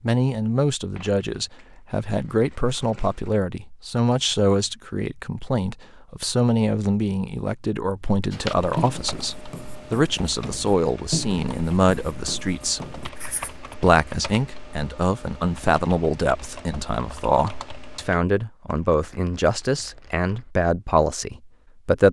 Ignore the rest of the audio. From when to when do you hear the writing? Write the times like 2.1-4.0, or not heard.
8.3-13.8.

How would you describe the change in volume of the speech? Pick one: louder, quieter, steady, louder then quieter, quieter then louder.
steady.